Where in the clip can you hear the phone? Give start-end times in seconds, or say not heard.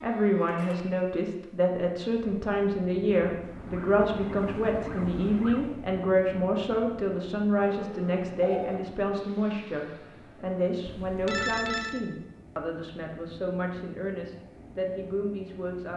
0.4-1.1, 7.6-8.9, 10.8-12.0.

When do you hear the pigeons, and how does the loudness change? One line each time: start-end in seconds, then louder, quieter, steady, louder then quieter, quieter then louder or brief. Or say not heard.
not heard.